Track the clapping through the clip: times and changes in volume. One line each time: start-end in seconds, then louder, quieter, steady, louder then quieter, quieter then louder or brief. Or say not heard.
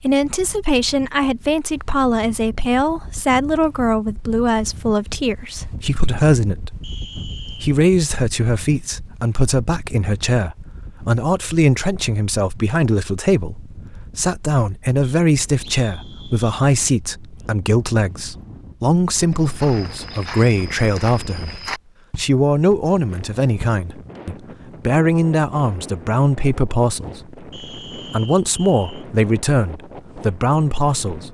not heard.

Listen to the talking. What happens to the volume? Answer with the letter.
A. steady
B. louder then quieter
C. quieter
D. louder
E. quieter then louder
A.